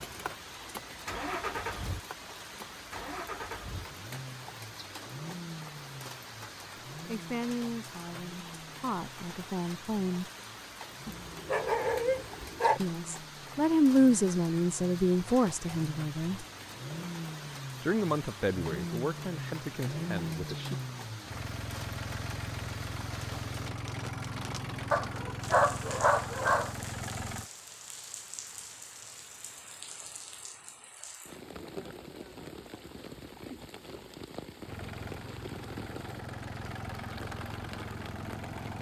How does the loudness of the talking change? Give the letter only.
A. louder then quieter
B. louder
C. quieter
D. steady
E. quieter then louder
A.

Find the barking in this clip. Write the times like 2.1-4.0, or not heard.
11.1-12.8, 24.9-26.8.